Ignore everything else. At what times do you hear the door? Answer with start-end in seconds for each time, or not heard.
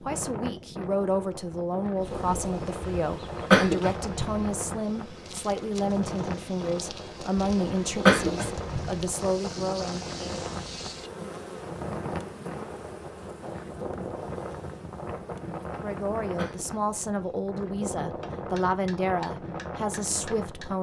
not heard.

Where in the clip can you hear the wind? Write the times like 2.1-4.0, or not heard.
0.0-20.7.